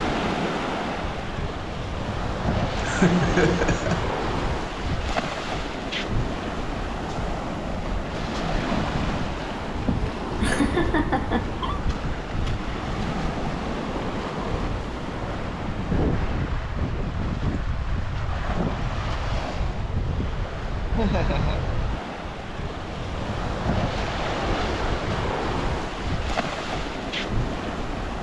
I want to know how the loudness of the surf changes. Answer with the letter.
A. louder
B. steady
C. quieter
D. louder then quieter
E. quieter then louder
B.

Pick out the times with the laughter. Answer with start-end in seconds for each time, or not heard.
2.8-4.0, 9.8-11.8, 20.9-21.7.